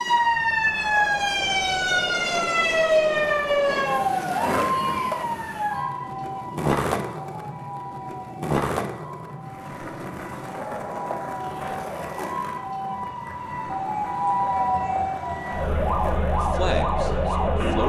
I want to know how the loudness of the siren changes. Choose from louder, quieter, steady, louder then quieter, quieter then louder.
quieter then louder.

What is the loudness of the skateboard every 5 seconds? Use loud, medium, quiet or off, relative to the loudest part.
loud, loud, medium, medium.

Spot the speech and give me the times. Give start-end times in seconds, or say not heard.
16.4-17.8.